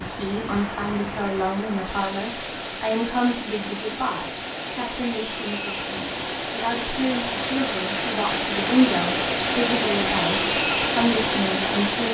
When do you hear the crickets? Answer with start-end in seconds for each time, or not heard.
not heard.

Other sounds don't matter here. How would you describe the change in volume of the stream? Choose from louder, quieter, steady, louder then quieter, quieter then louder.
louder.